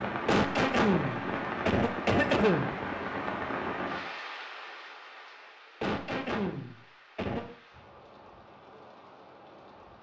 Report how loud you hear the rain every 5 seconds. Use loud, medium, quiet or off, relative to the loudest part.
loud, quiet.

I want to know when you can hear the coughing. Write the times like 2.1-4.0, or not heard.
0.2-2.8, 5.8-7.5.